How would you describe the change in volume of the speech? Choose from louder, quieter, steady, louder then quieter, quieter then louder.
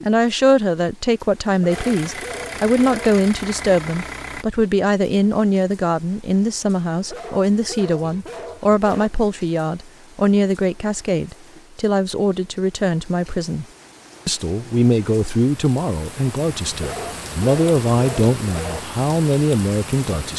steady.